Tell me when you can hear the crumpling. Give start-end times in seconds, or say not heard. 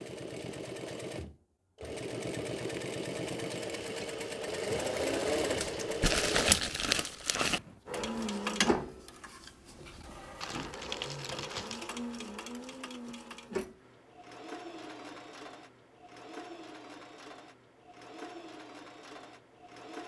5.6-7.6, 10.4-11.8.